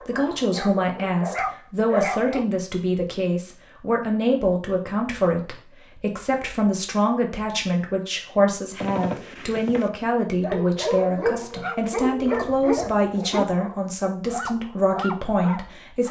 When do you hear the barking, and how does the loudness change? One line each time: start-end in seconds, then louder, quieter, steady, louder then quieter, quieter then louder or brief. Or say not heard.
0.0-2.5 brief
10.4-16.0 quieter.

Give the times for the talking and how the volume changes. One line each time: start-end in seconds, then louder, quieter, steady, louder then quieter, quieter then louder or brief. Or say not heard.
0.0-16.0 steady.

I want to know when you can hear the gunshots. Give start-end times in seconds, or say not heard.
8.8-9.9.